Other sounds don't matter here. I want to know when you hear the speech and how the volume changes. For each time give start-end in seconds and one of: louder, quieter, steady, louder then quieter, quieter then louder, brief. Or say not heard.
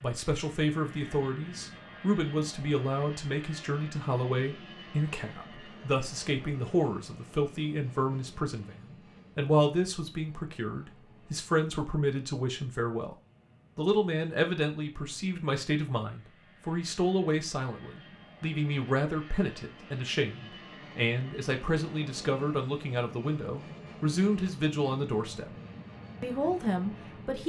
0.0-13.2 steady
13.8-25.5 steady
26.2-27.4 brief.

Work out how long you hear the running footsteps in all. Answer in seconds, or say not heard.
not heard.